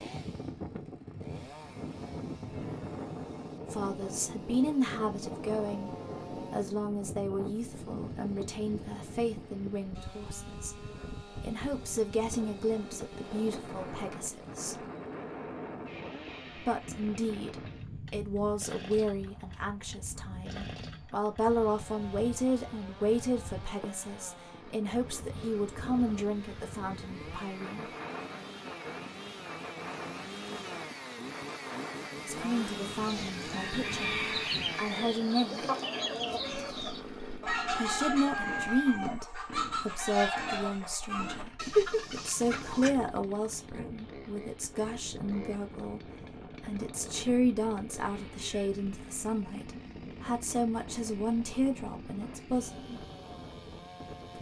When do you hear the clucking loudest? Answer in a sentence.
The volume of the clucking peaks at 42 seconds.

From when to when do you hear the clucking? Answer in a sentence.
You can hear the clucking from 33.0 to 42.9 s.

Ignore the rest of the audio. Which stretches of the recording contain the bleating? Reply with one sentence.
The bleating can't be heard in this clip.